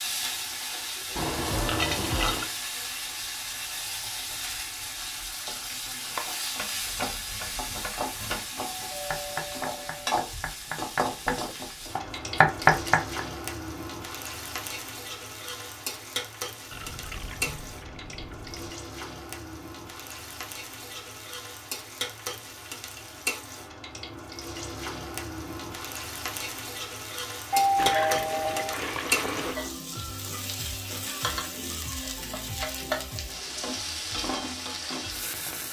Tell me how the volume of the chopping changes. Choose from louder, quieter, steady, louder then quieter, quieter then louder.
louder.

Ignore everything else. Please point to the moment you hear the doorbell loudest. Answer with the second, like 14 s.
28 s.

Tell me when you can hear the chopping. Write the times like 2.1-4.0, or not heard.
5.7-13.2.